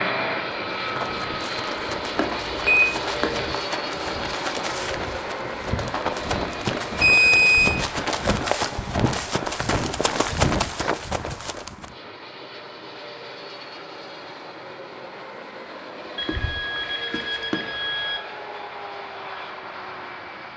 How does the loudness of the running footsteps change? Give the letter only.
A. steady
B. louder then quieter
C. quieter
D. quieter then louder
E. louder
E.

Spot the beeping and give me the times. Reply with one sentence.
You can hear the beeping from 2.1 to 3.4 s, from 7.0 to 7.8 s and from 16.1 to 18.2 s.